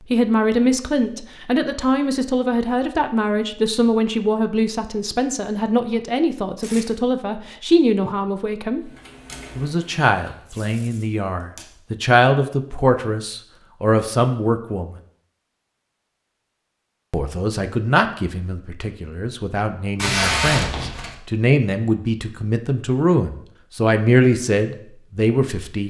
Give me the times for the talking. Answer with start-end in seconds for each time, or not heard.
0.1-8.9, 9.6-14.9, 17.1-25.8.